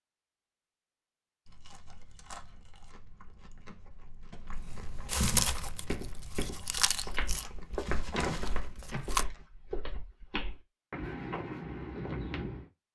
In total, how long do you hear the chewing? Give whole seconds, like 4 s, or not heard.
8 s.